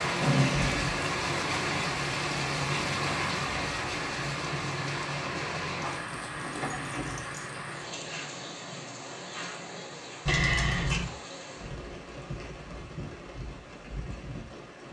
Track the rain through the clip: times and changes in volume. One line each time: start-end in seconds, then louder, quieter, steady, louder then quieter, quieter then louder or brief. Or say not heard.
0.0-14.8 quieter.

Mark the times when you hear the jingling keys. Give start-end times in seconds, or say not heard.
0.2-1.0, 5.8-7.5, 10.2-11.1.